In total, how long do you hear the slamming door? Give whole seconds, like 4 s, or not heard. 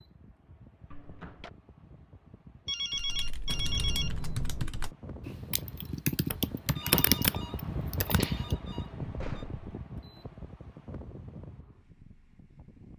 2 s.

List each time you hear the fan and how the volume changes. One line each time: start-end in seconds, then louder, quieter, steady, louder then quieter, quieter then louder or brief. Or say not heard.
0.0-12.9 louder then quieter.